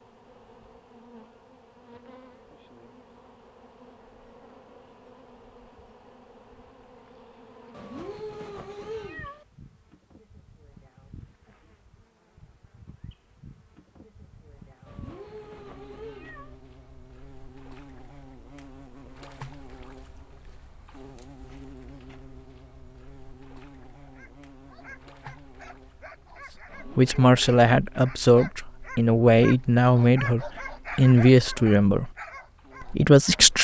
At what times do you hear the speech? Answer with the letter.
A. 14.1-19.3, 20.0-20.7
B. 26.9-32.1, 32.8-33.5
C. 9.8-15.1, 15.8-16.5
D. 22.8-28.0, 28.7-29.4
B.